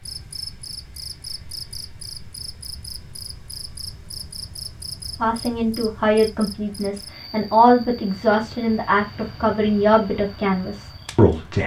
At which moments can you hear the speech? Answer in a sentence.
The speech can be heard from 5.2 to 11.6 s.